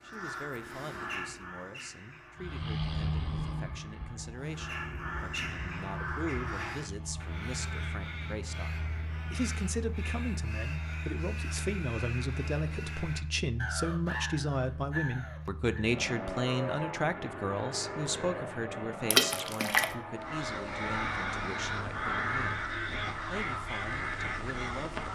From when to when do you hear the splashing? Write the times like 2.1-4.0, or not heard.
19.1-19.9.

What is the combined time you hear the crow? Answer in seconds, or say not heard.
19 s.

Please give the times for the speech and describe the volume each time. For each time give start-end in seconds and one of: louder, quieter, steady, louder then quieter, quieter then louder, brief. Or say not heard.
0.0-25.1 louder then quieter.